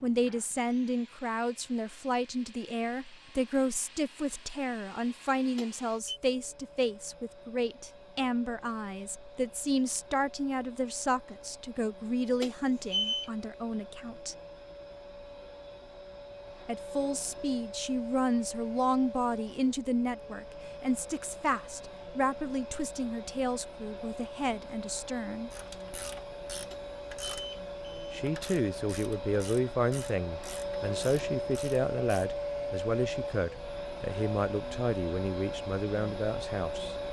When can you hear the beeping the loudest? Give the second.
13 s.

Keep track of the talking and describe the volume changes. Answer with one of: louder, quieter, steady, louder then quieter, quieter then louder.
steady.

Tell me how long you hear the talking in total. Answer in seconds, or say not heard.
32 s.